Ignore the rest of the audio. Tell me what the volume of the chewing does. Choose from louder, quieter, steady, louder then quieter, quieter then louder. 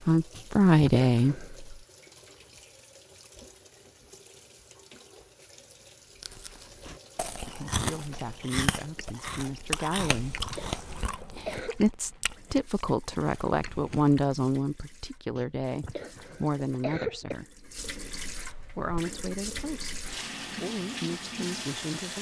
quieter.